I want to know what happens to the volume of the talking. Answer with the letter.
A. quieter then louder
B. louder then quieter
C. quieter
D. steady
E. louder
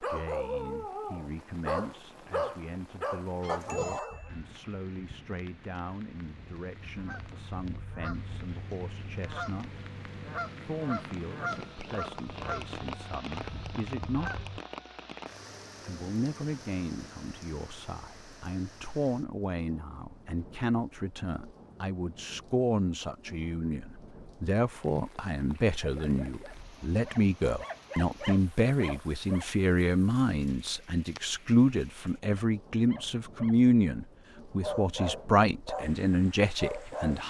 E.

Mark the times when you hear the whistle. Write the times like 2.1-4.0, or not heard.
not heard.